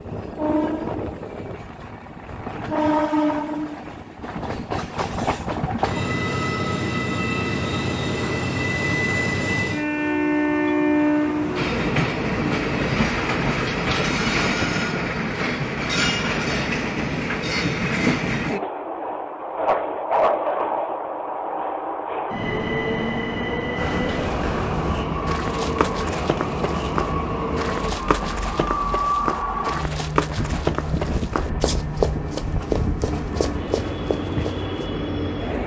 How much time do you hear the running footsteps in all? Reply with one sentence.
You can hear the running footsteps for 11 seconds altogether.